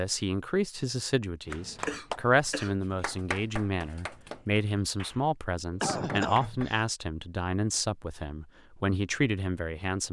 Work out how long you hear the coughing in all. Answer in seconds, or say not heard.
2 s.